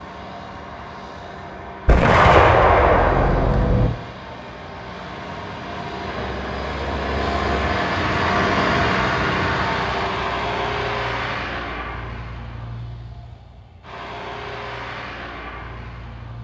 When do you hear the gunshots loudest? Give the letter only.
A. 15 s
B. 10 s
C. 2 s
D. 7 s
C.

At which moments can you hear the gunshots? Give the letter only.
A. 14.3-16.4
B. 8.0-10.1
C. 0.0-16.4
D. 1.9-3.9
D.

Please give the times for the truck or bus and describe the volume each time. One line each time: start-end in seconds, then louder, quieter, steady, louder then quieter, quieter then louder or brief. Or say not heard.
0.0-16.4 louder then quieter.